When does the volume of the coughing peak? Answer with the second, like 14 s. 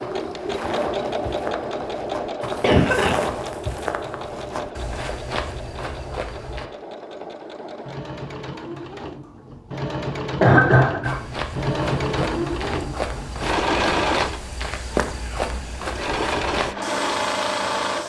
11 s.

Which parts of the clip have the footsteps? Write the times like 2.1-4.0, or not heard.
0.0-6.7, 11.0-18.0.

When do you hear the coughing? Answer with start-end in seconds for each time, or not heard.
2.6-3.2, 10.3-11.2.